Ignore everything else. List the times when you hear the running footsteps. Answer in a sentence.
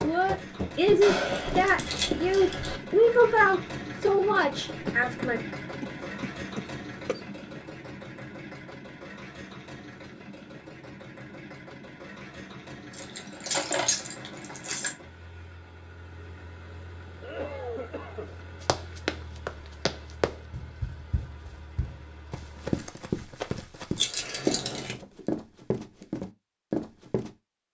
The running footsteps can be heard from 0.0 to 3.0 s and from 18.3 to 27.3 s.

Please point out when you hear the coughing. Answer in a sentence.
The coughing can be heard from 4.8 to 7.2 s and from 17.2 to 18.4 s.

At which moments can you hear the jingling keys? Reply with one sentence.
You can hear the jingling keys from 1.0 to 2.8 s, from 12.9 to 14.9 s and from 23.9 to 24.9 s.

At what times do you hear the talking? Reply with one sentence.
You can hear the talking from 0.0 to 5.4 s.